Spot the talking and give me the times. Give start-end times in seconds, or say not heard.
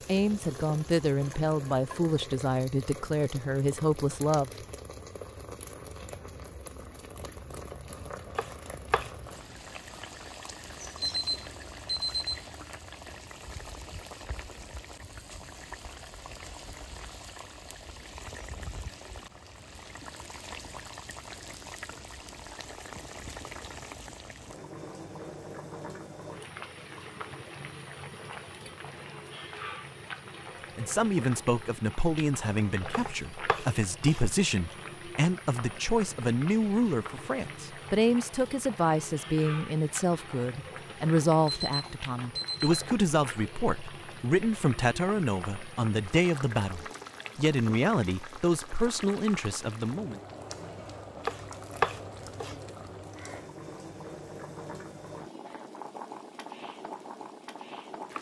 0.1-4.5, 30.8-50.2.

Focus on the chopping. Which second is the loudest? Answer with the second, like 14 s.
52 s.